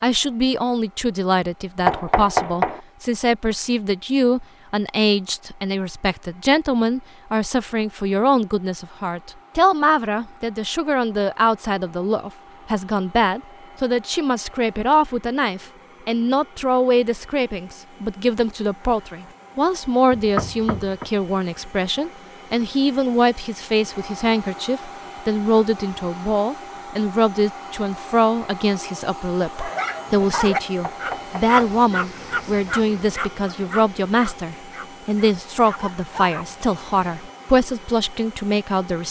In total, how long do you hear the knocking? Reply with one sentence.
The knocking can be heard for 3 seconds in total.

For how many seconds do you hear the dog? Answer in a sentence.
You can hear the dog for 8 seconds altogether.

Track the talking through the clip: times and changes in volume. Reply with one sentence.
You can hear the talking from 0.0 to 39.0 s, at a steady volume.